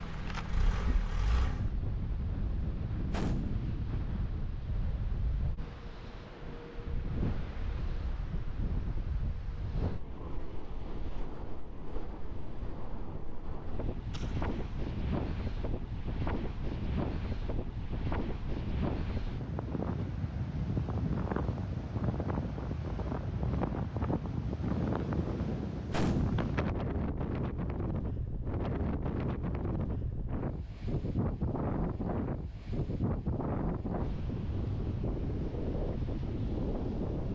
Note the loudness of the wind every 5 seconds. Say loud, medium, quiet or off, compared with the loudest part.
medium, medium, medium, loud, loud, loud, loud, loud.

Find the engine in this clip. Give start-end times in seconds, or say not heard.
0.0-1.7.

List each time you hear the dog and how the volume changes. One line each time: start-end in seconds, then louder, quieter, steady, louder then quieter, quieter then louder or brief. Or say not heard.
not heard.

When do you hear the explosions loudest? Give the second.
26 s.